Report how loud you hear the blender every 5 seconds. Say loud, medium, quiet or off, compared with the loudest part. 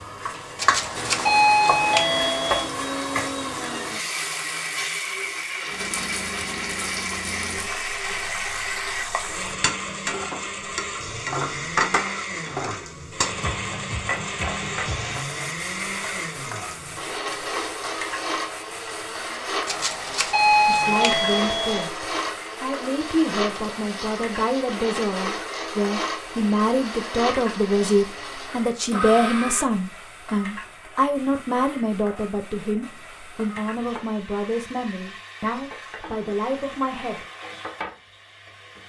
loud, loud, loud, loud, loud, loud, off, off.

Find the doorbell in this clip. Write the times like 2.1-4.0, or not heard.
0.6-2.7, 19.6-21.9.